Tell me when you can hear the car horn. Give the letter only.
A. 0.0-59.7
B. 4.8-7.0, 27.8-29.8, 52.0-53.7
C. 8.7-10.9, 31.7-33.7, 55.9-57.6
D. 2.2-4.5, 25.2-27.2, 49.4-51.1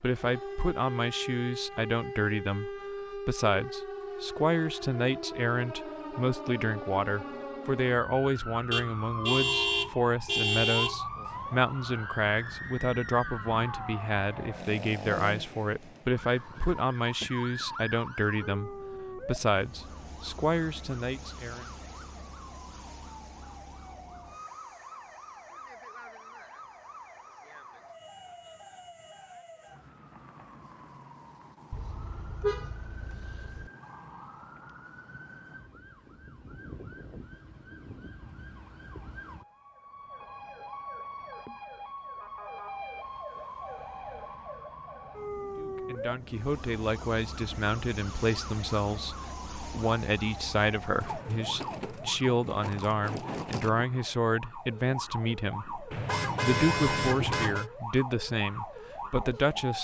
C.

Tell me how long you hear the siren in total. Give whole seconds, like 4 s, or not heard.
60 s.